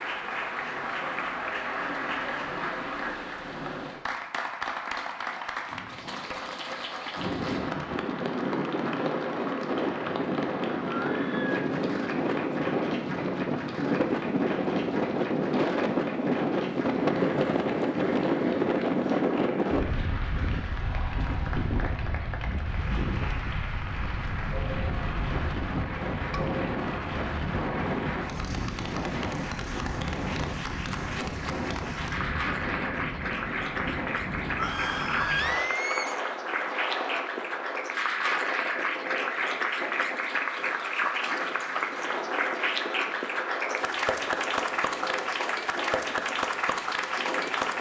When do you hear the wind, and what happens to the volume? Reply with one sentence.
The wind can be heard from 7.2 to 47.7 s, getting quieter.